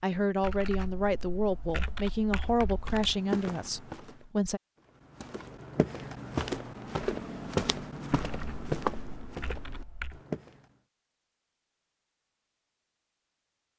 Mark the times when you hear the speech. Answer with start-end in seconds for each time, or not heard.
0.0-4.6.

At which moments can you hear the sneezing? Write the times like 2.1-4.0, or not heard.
not heard.